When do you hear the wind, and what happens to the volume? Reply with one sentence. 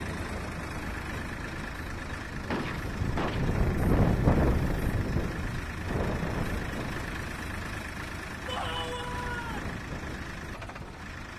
The wind can be heard from 0.0 to 11.3 s, getting louder then quieter.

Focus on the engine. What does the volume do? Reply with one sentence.
The volume of the engine stays about the same.